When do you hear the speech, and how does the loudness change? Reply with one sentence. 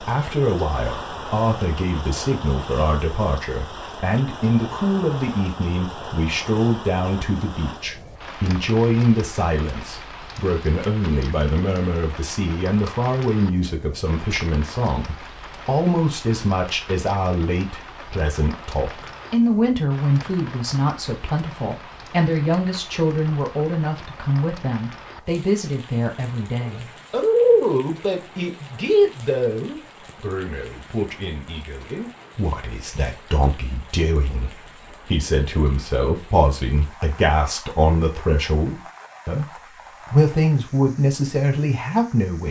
The speech can be heard from 0.0 to 39.5 s, at a steady volume; and briefly from 40.1 to 42.4 s.